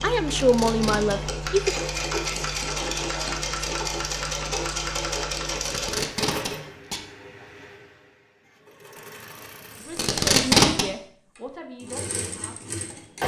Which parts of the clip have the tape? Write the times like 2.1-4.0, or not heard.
0.2-1.1, 5.6-7.0, 9.9-10.8.